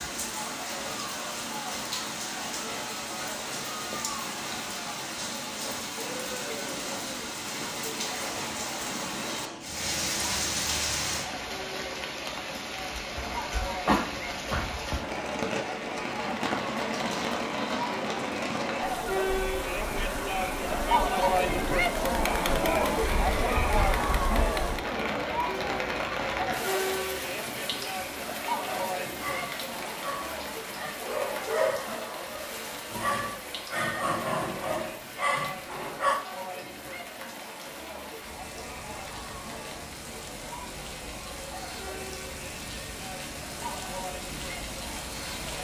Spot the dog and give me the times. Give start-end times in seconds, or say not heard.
28.6-36.2.